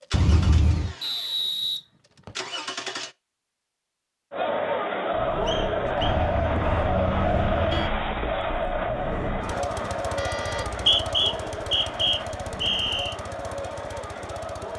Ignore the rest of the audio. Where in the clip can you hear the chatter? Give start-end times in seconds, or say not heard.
4.3-14.7.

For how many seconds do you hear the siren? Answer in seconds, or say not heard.
not heard.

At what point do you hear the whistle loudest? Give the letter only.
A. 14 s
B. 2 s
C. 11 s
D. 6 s
C.